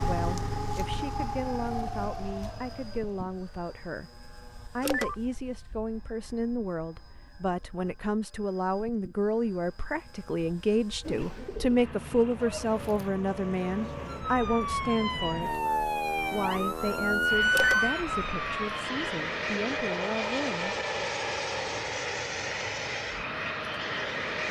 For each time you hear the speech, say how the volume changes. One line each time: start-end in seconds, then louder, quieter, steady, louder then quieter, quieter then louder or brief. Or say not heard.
0.1-15.6 louder
16.3-20.8 quieter then louder.